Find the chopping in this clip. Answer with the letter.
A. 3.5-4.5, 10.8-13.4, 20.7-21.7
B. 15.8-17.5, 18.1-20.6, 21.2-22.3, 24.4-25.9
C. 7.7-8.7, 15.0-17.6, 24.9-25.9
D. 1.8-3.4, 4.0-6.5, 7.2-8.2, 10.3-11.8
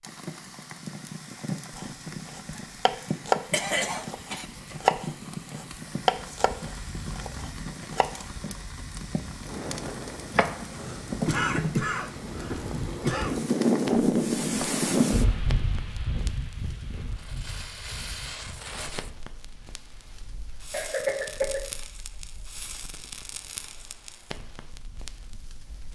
D.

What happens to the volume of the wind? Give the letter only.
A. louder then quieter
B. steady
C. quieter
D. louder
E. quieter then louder
A.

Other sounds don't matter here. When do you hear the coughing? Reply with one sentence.
You can hear the coughing from 3.5 to 4.5 s, from 10.8 to 13.4 s and from 20.7 to 21.7 s.